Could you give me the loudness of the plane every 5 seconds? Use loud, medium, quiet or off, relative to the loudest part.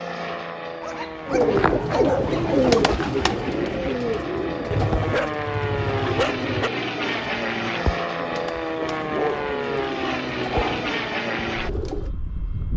medium, loud, loud.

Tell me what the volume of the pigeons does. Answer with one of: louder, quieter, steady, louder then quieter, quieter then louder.
quieter.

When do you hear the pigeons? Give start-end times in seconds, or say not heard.
1.2-12.2.